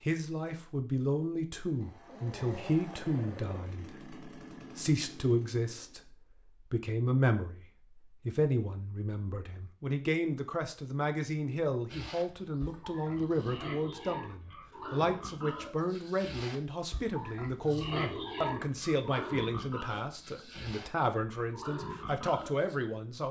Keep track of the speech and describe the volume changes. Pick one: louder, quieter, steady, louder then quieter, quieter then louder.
steady.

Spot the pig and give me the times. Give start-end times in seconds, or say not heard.
11.8-22.8.